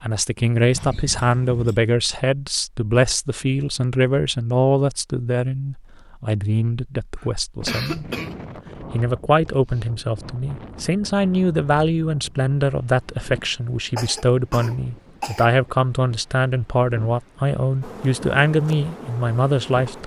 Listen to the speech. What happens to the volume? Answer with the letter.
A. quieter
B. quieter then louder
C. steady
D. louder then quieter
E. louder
C.